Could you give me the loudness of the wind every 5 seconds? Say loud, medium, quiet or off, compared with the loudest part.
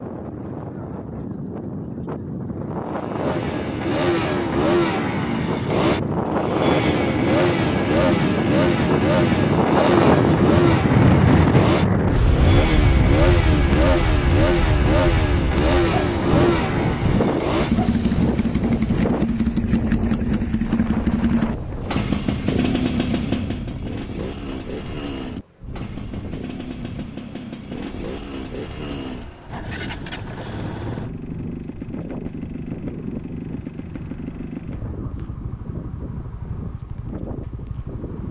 medium, loud, loud, medium, quiet, quiet, quiet, quiet.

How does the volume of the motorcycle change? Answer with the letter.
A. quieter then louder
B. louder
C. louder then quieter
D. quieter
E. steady
D.